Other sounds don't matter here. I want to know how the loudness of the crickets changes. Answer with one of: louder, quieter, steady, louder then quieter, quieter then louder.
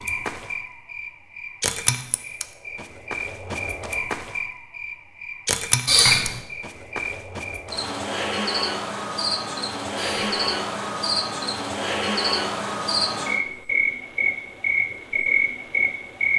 louder.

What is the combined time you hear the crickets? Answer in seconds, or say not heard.
16 s.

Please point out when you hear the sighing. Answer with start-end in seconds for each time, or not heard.
5.8-6.4, 9.9-10.5.